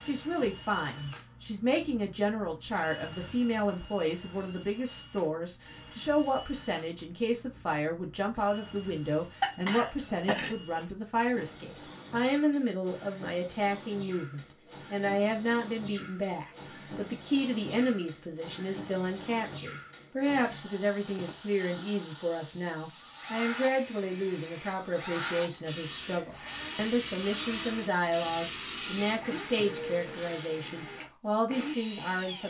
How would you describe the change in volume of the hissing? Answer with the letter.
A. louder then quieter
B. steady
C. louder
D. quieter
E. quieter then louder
C.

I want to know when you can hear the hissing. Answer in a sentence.
The hissing can be heard from 20.7 to 30.6 s.